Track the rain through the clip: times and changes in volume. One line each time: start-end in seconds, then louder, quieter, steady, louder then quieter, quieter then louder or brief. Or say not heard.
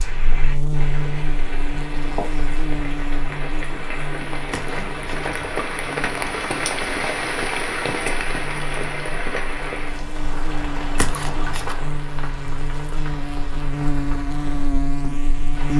0.0-15.7 louder then quieter.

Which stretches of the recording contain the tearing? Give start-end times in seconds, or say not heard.
4.5-5.5, 10.9-11.8.